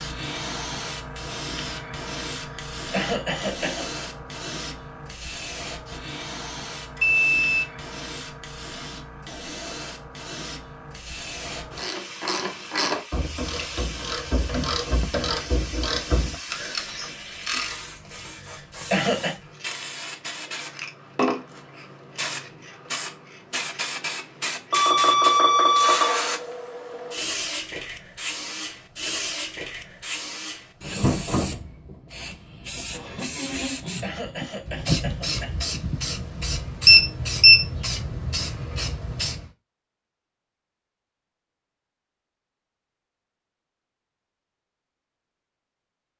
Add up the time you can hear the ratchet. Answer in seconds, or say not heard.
6 s.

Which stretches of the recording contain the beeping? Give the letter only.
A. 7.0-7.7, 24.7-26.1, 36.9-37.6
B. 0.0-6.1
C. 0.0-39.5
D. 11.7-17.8
A.